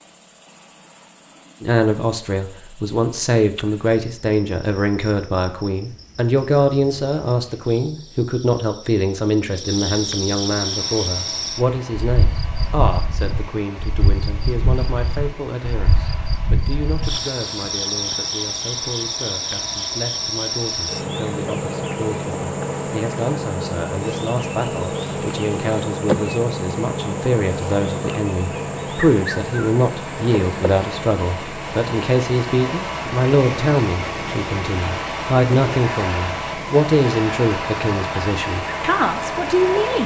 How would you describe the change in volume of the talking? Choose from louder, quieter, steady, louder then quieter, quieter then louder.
quieter then louder.